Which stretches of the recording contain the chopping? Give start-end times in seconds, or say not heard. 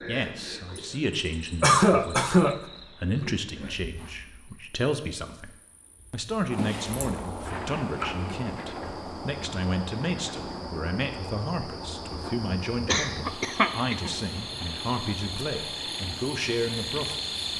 not heard.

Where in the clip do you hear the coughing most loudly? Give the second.
2 s.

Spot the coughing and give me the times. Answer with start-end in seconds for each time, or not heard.
1.6-2.6, 6.5-7.1, 12.8-14.2.